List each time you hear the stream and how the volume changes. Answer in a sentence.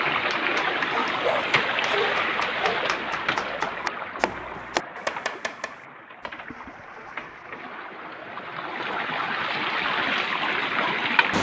The stream can be heard from 0.0 to 11.3 s, getting quieter then louder.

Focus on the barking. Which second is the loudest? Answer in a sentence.
The loudest moment of the barking is at 1 second.